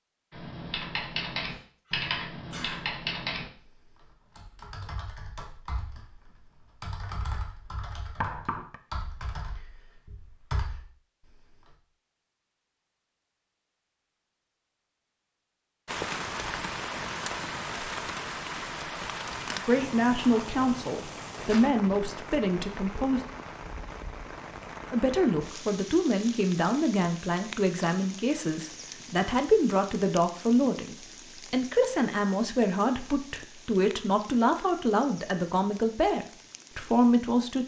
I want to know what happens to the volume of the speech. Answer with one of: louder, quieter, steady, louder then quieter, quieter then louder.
steady.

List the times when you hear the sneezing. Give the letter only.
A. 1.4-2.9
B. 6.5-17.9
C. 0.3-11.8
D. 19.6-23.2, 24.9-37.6
A.